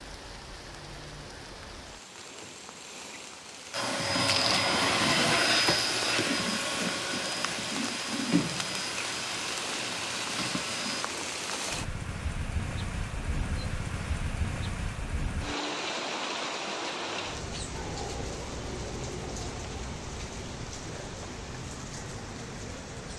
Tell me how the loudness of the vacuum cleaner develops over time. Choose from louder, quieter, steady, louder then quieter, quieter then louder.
quieter.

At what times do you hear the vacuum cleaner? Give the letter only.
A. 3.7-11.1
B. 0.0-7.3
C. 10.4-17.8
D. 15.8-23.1
A.